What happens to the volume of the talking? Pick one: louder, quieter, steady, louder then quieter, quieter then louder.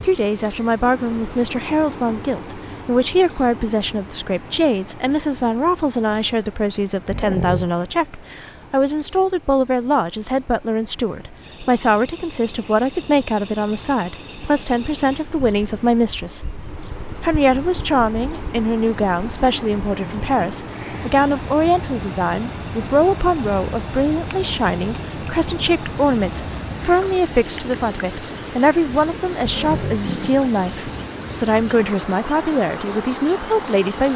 steady.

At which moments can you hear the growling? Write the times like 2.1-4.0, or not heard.
7.0-7.7, 20.0-20.8, 29.4-30.4.